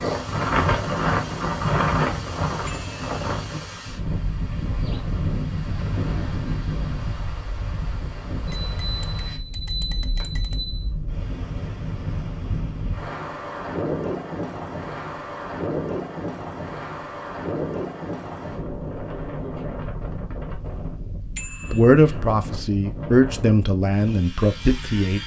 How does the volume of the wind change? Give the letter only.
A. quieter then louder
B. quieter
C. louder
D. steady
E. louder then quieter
B.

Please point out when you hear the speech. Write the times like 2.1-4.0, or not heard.
21.7-25.2.